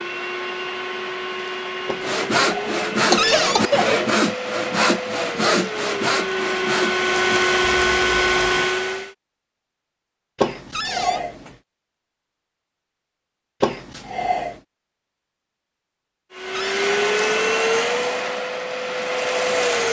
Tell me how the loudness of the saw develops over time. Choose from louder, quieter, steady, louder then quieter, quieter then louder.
quieter.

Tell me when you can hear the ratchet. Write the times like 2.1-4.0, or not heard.
not heard.